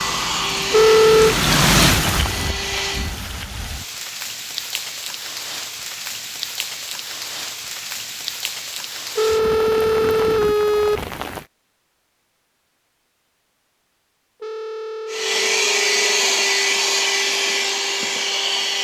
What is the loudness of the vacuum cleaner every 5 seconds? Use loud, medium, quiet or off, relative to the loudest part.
medium, off, off, loud.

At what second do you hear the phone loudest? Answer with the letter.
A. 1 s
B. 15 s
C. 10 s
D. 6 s
A.